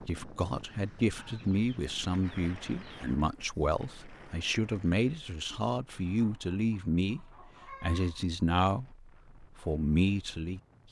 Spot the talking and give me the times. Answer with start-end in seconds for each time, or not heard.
0.0-10.8.